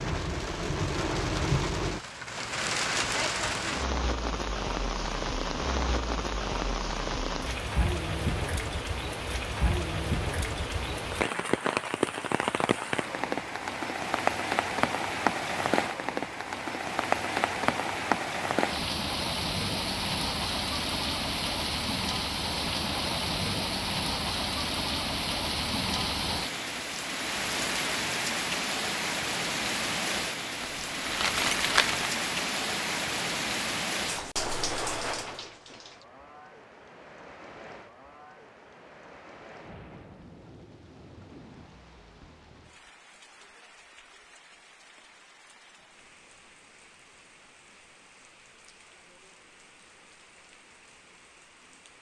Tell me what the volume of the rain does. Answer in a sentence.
The volume of the rain goes down.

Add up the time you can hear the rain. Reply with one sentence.
You can hear the rain for 52 seconds altogether.